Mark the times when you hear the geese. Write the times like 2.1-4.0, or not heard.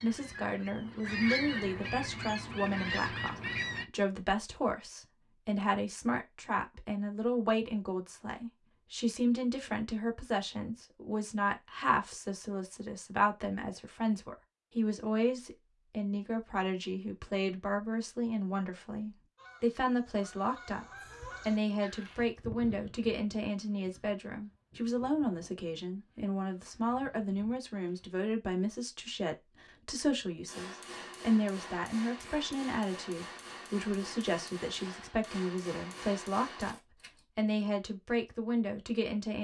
0.0-3.9, 19.4-28.2.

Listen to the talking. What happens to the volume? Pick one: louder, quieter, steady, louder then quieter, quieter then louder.
steady.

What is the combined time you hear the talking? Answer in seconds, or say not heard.
39 s.